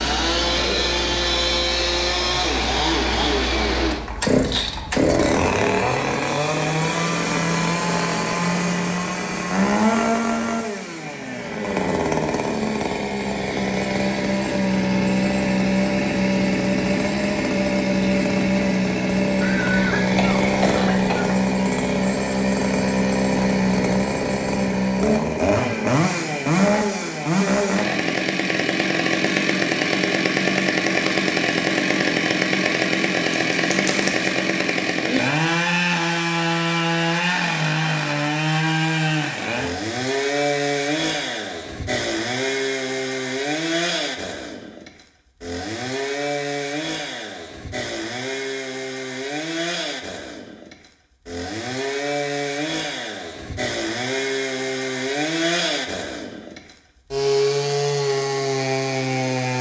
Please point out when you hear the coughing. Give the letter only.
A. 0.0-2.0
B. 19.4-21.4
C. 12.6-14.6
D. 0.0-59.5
B.